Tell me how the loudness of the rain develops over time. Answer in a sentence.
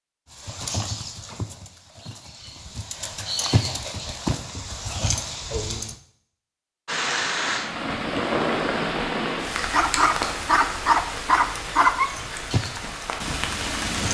The loudness of the rain goes down.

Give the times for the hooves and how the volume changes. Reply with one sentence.
The hooves can be heard from 0.3 to 6.0 s, getting quieter then louder; and briefly from 12.1 to 14.0 s.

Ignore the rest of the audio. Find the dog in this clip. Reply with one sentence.
You can hear the dog from 9.7 to 12.4 s.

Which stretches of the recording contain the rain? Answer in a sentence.
You can hear the rain from 6.8 to 14.0 s.